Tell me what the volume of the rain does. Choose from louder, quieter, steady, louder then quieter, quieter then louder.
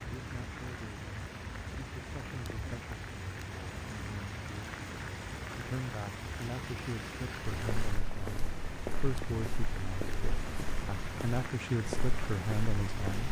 steady.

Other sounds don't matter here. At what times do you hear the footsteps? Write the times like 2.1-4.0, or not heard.
7.5-13.2.